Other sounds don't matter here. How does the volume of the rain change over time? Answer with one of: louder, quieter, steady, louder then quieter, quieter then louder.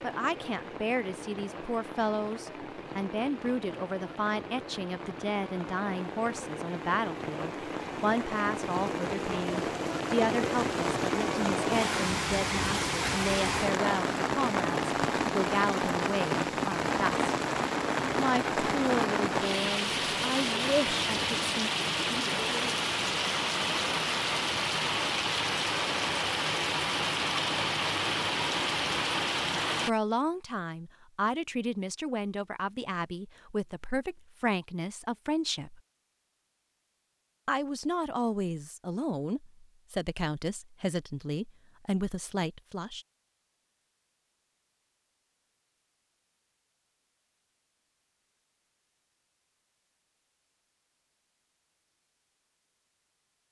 louder.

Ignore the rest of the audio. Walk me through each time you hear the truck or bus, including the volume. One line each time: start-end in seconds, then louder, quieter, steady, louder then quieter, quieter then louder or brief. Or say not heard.
not heard.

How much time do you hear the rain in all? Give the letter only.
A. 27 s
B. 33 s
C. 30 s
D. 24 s
C.